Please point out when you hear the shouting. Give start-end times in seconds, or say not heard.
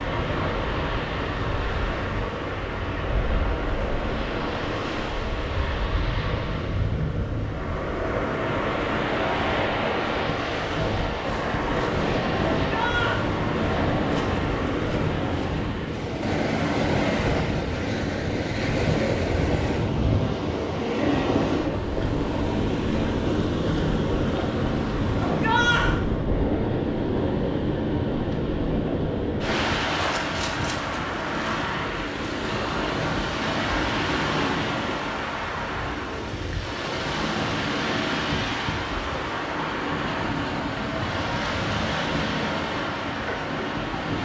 12.7-13.2, 25.2-26.0.